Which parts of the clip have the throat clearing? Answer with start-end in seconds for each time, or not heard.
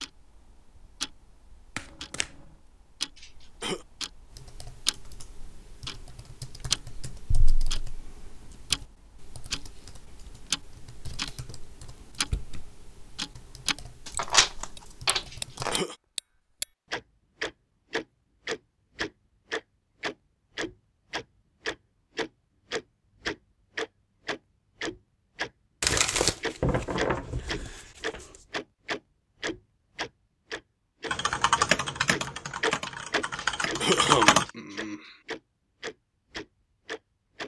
3.1-3.9, 15.2-15.9, 33.4-35.1.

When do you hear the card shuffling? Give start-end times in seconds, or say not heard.
1.8-2.3, 14.1-15.8, 25.8-28.4.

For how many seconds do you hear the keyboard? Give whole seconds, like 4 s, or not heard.
15 s.